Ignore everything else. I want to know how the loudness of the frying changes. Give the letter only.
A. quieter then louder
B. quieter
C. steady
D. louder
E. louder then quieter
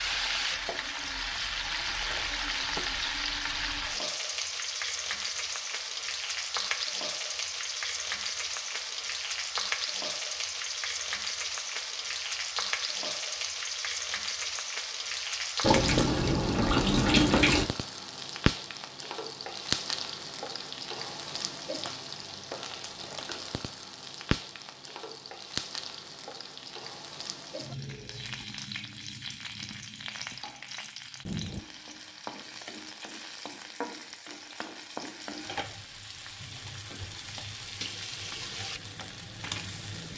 B.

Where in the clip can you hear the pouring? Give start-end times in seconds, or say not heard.
15.6-17.6.